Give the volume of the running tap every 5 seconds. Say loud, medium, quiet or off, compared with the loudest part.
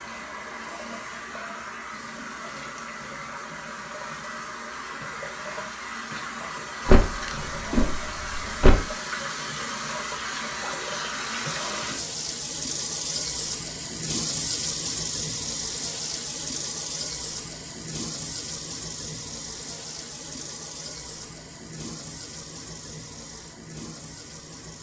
medium, loud, loud, loud, medium.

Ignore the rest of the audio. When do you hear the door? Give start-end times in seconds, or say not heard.
6.8-8.8.